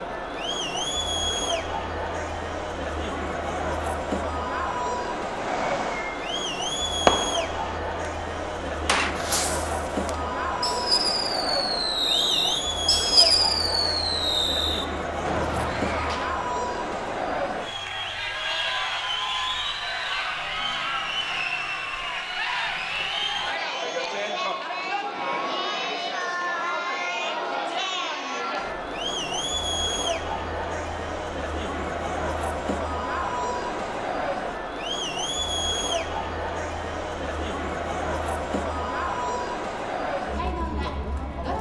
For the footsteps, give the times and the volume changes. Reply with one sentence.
The footsteps can't be heard in this clip.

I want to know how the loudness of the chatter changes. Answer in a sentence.
The loudness of the chatter stays about the same.